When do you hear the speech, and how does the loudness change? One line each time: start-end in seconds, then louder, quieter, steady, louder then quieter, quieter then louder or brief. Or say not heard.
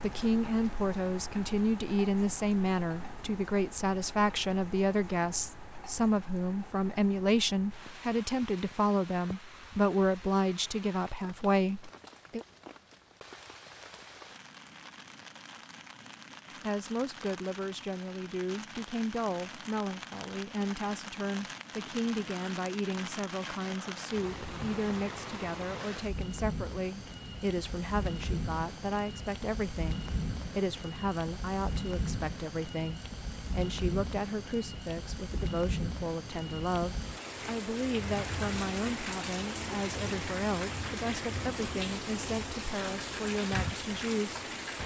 0.0-12.4 steady
16.6-44.5 steady.